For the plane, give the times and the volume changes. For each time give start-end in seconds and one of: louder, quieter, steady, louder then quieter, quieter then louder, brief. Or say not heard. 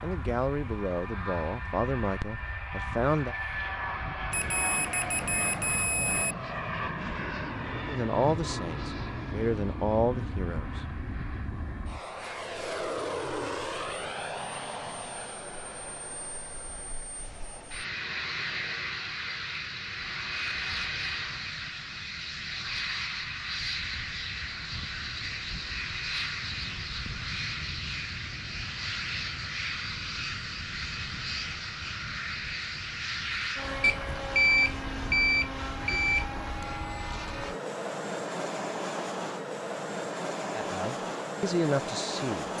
0.0-42.5 steady.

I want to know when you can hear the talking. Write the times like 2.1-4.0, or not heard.
0.0-3.4, 7.8-11.0, 40.5-42.5.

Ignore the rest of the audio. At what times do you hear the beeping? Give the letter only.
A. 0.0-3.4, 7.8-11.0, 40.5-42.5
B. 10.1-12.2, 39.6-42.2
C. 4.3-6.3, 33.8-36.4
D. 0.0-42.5
C.